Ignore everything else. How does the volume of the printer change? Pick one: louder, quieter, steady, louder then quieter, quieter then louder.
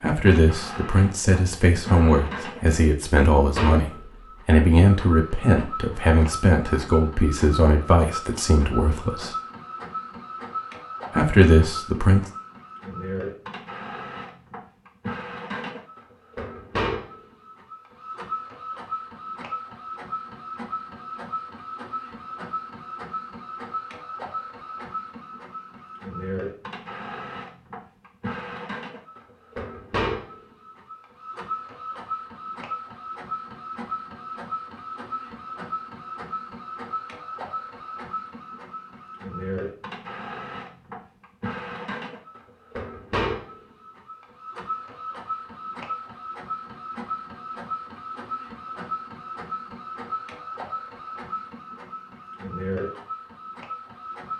steady.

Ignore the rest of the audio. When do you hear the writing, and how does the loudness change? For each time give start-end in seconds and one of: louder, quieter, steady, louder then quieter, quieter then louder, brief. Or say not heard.
not heard.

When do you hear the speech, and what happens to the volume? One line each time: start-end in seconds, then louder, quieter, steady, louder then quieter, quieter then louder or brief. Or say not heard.
0.0-9.3 steady
11.1-12.2 brief.